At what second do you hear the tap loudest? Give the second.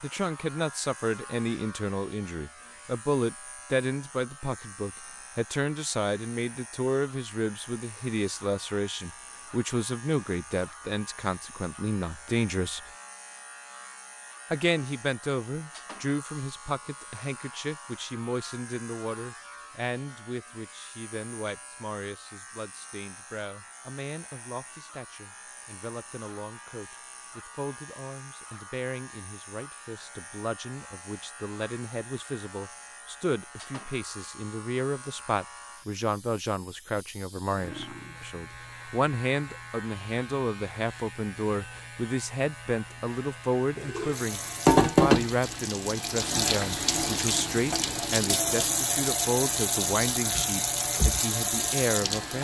45 s.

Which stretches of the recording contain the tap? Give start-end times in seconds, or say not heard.
43.8-52.3.